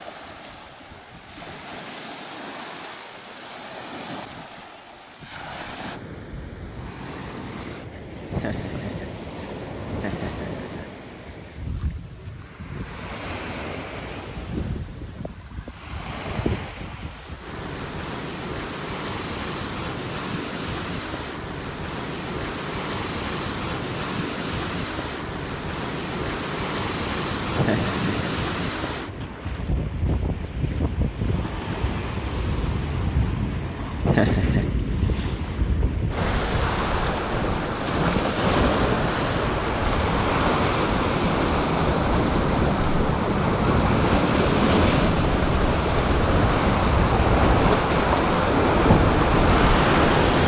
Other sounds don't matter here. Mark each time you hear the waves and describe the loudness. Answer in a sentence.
You can hear the waves from 0.0 to 50.4 s, getting louder.